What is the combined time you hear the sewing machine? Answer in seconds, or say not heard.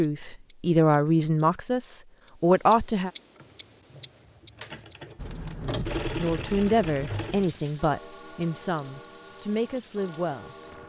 4 s.